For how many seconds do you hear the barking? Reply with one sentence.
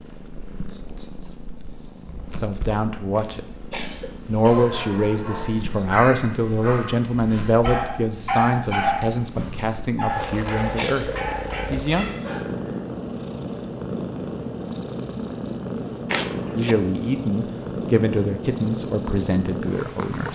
The barking can be heard for 8 seconds in total.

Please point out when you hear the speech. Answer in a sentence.
The speech can be heard from 2.4 to 3.6 s, from 4.2 to 12.1 s and from 16.6 to 20.3 s.